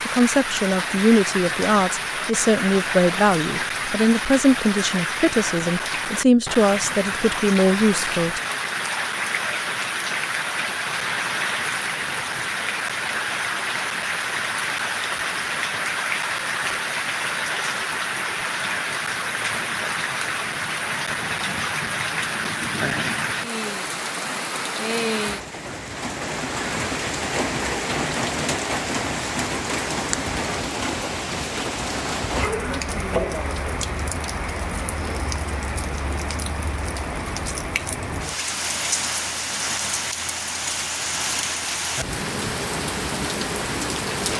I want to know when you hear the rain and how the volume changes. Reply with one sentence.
The rain can be heard from 0.0 to 44.3 s, at a steady volume.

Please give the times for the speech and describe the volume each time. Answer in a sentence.
The speech can be heard from 0.1 to 8.4 s, at a steady volume.